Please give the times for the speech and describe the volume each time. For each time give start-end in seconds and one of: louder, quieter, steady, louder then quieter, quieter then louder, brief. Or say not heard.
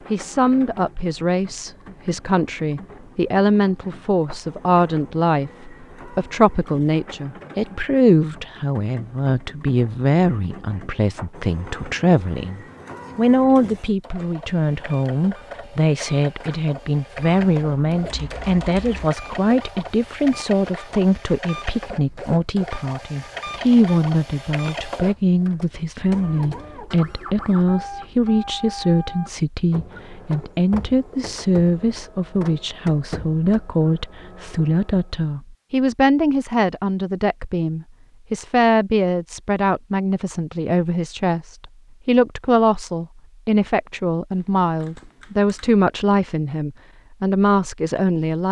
0.1-48.4 steady.